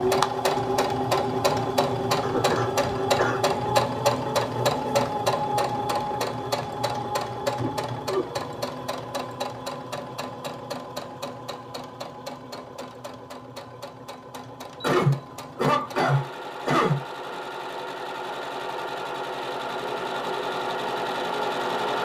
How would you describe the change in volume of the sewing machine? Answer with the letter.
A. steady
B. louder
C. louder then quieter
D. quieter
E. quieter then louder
E.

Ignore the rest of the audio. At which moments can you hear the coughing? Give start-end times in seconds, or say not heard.
2.2-3.4, 7.6-8.2, 14.8-17.4.